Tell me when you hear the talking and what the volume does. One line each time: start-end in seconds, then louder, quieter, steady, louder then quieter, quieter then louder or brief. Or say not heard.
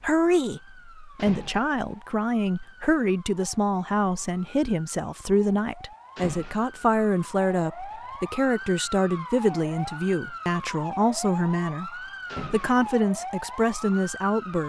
0.0-14.6 steady.